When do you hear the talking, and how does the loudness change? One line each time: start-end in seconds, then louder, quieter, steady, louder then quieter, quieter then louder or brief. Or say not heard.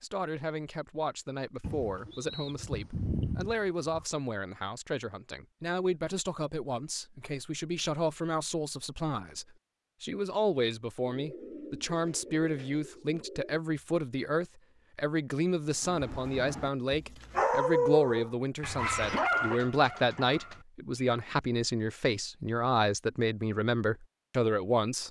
0.0-25.0 louder.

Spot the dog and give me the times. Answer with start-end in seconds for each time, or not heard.
15.8-21.2.